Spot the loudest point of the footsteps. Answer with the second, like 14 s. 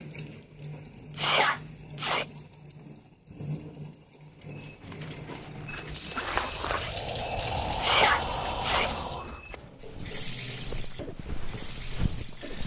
6 s.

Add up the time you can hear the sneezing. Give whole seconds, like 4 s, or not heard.
2 s.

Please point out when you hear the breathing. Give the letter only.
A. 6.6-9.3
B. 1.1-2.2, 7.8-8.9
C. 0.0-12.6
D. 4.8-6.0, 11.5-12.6
A.